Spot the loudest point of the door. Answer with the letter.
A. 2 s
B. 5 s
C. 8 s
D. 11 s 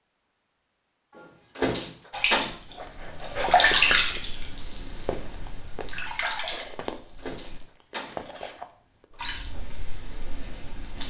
A.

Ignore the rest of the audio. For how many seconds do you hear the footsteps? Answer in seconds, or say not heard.
7 s.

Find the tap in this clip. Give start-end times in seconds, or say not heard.
2.1-7.6, 9.2-11.0.